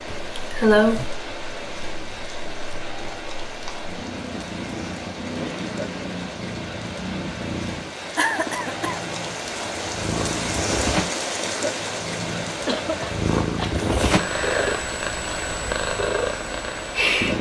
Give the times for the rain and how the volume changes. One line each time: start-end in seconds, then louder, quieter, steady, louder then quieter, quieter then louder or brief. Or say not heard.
0.0-17.3 louder then quieter.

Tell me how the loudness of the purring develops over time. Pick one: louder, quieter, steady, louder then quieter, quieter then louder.
louder.